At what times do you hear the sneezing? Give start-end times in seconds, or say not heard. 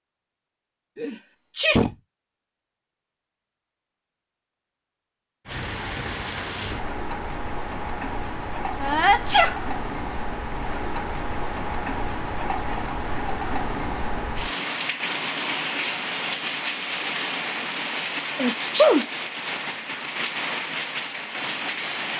0.9-1.9, 8.8-9.6, 18.4-19.1.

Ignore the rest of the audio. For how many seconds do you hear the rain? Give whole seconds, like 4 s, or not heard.
17 s.